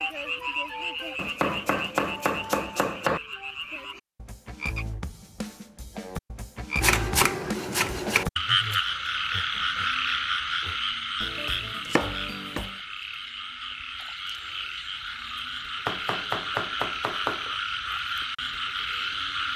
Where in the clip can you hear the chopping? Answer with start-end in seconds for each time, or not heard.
1.1-3.2, 6.8-8.2, 11.2-12.7, 15.8-17.6.